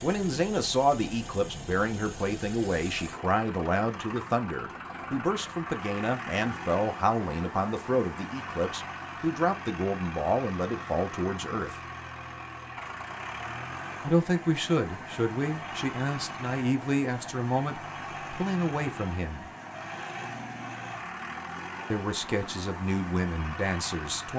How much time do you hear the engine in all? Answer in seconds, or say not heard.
24 s.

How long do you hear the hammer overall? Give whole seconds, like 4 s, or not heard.
not heard.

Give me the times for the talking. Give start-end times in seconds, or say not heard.
0.0-11.8, 14.1-19.5, 21.9-24.3.